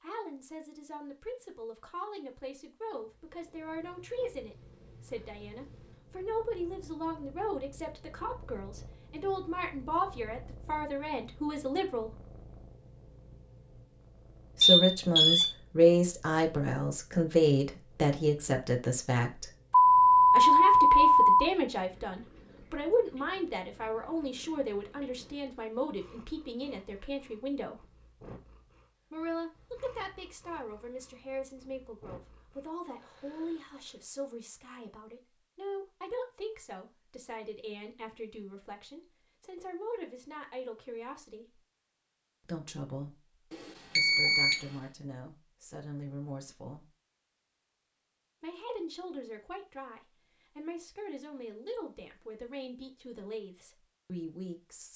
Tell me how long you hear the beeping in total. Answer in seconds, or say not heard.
3 s.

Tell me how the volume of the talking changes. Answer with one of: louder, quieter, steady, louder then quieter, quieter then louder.
louder then quieter.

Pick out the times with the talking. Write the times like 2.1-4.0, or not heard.
0.0-12.2, 14.6-19.5, 20.3-27.9, 29.1-41.6, 42.4-46.9, 48.4-54.9.